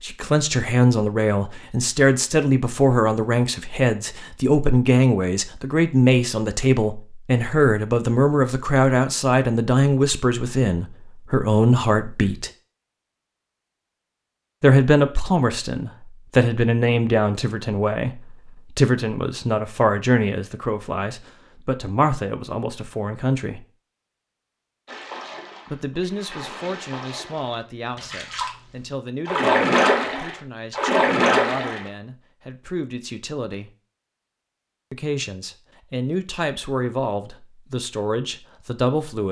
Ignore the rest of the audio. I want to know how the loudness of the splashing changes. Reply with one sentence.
The volume of the splashing goes up.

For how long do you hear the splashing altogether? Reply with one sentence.
The splashing can be heard for 7 seconds in total.